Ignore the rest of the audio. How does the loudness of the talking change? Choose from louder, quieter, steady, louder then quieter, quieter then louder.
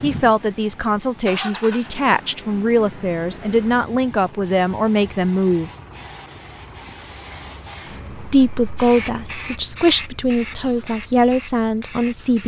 steady.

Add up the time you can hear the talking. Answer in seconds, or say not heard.
10 s.